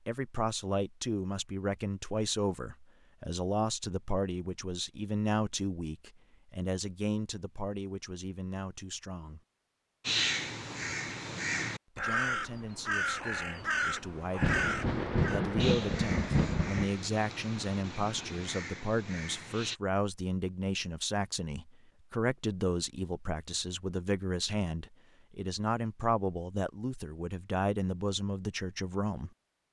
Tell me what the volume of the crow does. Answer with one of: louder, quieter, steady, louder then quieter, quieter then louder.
quieter.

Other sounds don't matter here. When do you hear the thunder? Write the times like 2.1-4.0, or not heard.
14.4-16.9.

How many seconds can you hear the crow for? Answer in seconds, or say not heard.
10 s.